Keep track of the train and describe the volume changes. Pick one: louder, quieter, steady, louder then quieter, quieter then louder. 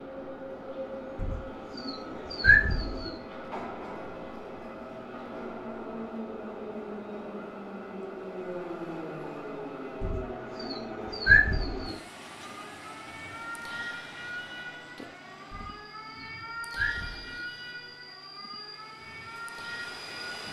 quieter.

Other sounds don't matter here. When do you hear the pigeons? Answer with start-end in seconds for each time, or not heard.
1.1-3.1, 10.0-11.9, 15.5-17.4.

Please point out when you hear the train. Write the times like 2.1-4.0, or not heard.
0.0-20.4.